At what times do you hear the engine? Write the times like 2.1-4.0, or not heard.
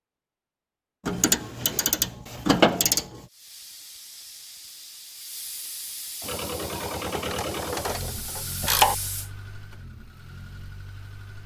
6.2-11.4.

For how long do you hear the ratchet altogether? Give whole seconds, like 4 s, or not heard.
4 s.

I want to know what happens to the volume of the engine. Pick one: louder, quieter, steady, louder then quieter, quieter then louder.
quieter.